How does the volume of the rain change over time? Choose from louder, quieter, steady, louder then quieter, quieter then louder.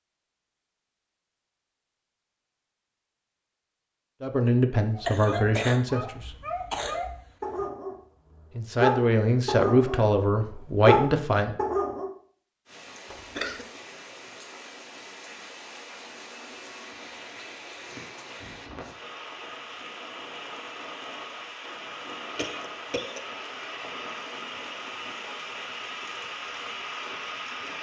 louder.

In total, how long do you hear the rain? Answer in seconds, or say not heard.
15 s.